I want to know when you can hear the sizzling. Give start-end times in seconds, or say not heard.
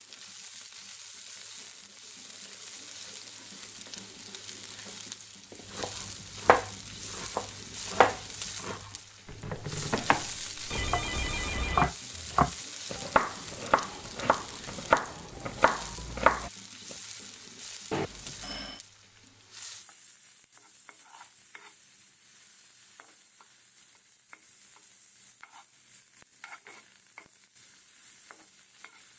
0.0-29.1.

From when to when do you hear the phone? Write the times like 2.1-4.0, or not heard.
10.7-11.9, 17.9-18.9.